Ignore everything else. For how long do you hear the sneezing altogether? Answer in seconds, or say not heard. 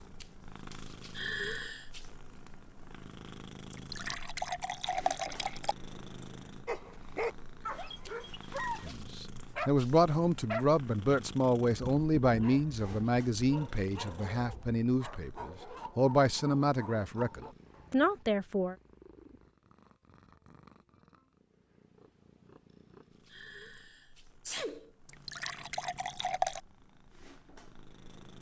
2 s.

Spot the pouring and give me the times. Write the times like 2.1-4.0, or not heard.
3.7-5.8, 25.1-26.6.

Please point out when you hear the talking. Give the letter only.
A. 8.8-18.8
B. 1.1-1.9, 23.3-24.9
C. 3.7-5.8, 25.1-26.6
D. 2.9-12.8
A.